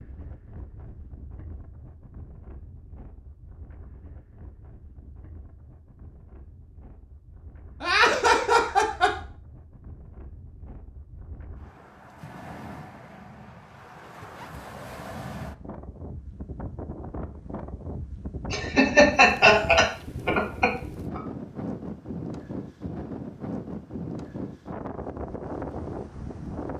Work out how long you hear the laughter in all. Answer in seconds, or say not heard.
4 s.